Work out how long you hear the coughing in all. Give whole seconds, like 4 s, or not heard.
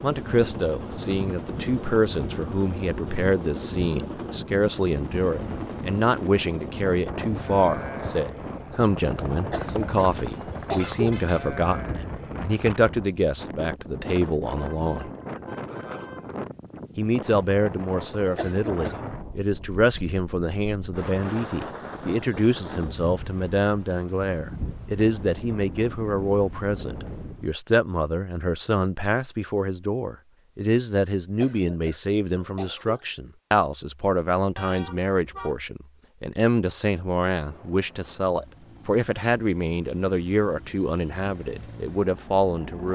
4 s.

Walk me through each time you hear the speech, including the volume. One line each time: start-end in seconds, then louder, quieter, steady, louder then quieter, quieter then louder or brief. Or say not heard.
0.0-15.1 steady
16.9-42.9 steady.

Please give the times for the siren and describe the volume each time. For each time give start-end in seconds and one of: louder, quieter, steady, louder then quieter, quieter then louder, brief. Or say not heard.
not heard.